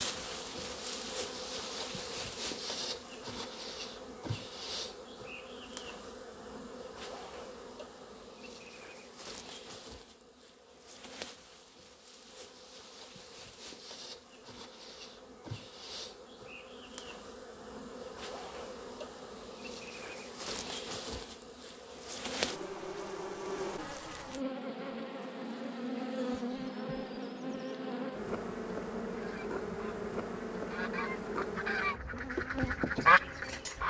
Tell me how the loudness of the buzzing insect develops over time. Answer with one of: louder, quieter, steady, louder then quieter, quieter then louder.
quieter then louder.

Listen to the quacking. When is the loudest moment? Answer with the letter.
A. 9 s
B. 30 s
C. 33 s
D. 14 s
C.